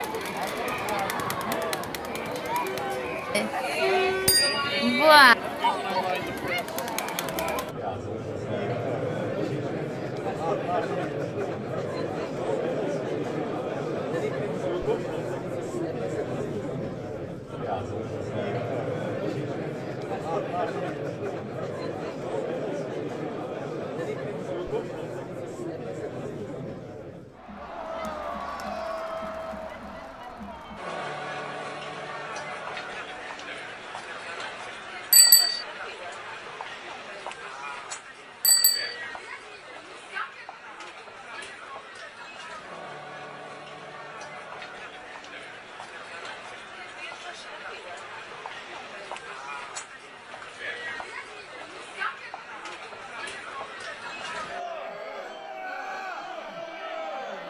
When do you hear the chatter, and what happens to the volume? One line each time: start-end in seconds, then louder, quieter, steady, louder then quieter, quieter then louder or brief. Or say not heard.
0.0-57.4 quieter.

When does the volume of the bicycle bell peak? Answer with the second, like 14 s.
5 s.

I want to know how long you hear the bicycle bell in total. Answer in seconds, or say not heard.
3 s.